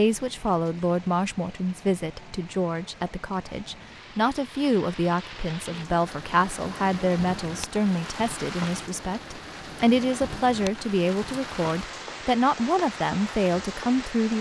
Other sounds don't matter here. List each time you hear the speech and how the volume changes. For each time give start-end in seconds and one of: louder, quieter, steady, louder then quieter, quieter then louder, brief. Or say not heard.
0.0-14.3 steady.